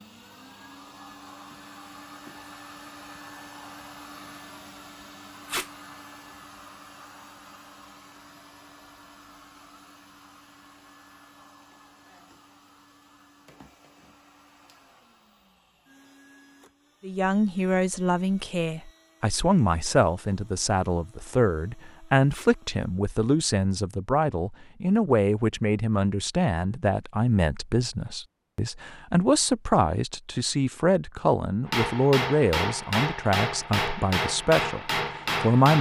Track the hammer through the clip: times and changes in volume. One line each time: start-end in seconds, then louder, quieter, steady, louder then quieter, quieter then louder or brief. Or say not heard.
31.6-35.7 steady.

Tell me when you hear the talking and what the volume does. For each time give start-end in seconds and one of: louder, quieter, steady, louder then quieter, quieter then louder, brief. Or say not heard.
17.0-35.7 steady.